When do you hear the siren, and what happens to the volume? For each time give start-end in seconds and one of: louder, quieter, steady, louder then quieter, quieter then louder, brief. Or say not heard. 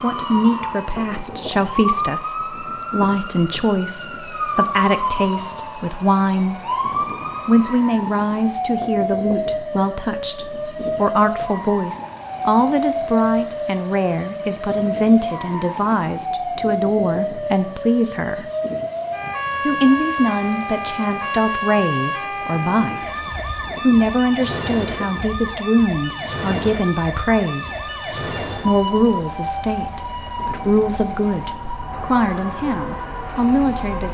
0.0-34.1 steady.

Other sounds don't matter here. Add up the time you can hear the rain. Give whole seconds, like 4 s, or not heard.
not heard.